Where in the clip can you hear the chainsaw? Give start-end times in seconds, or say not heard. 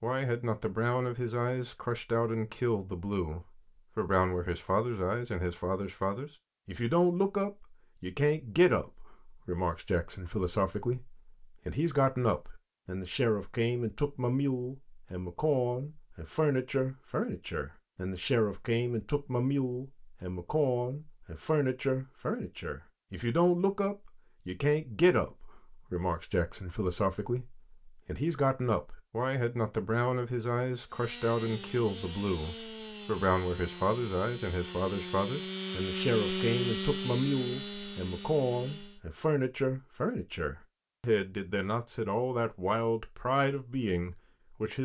30.9-39.0.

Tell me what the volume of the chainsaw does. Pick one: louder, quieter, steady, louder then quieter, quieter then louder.
louder then quieter.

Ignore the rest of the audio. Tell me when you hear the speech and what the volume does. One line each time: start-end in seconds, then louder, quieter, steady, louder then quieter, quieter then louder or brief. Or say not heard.
0.0-44.7 steady.